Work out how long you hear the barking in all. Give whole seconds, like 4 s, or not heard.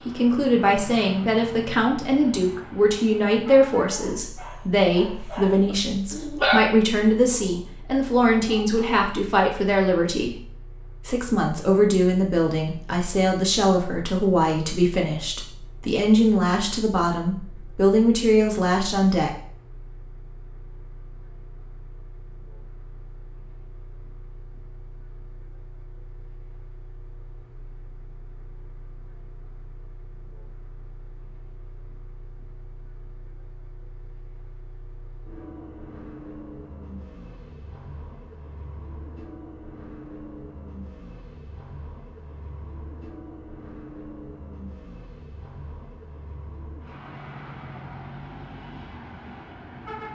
5 s.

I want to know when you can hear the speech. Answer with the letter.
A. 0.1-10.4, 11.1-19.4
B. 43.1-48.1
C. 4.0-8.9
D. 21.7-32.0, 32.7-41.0
A.